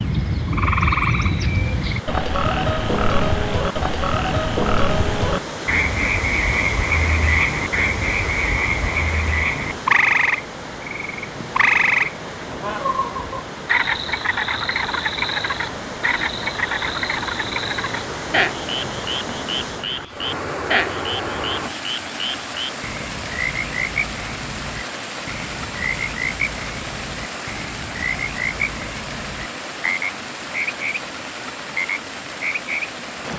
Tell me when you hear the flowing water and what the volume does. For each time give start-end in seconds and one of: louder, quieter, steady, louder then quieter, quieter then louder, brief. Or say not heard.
0.0-33.3 steady.